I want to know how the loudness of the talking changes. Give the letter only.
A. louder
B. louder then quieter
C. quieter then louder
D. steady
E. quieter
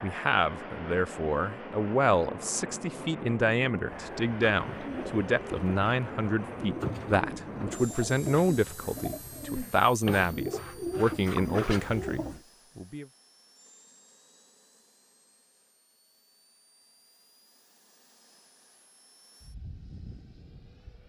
D.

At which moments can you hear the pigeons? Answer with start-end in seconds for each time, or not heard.
3.9-12.4.